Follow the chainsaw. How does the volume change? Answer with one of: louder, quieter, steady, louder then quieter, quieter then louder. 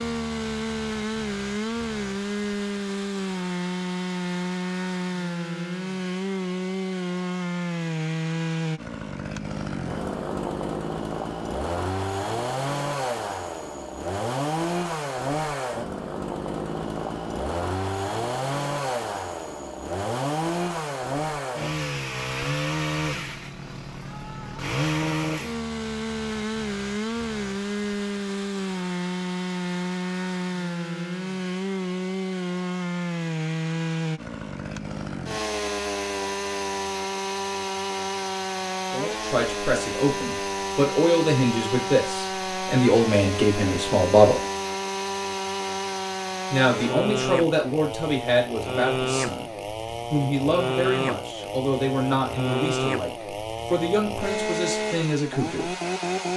steady.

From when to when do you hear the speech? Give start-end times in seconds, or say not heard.
38.9-44.4, 46.5-49.5, 50.1-55.8.